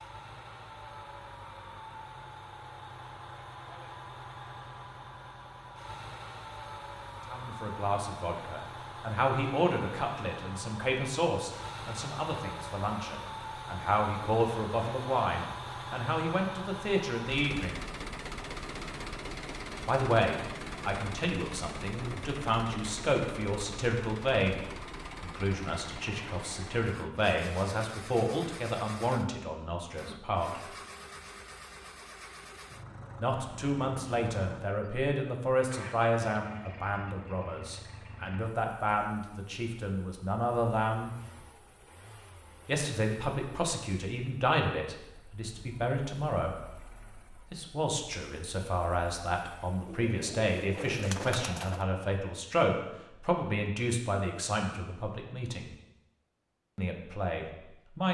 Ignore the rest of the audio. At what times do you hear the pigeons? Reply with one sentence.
You can hear the pigeons from 49.9 to 51.9 s.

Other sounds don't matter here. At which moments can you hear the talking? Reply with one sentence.
The talking can be heard from 7.2 to 17.9 s, from 19.9 to 30.6 s, from 33.2 to 41.1 s, from 42.6 to 55.7 s and from 56.8 to 58.0 s.